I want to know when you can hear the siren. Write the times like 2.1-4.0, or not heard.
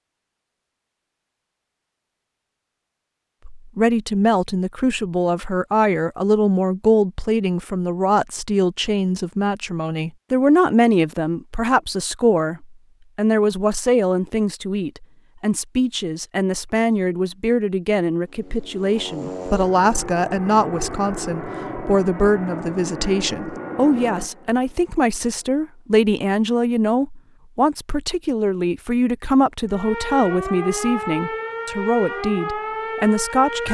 29.6-33.6.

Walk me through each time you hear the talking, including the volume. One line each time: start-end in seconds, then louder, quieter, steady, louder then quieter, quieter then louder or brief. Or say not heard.
3.5-33.6 steady.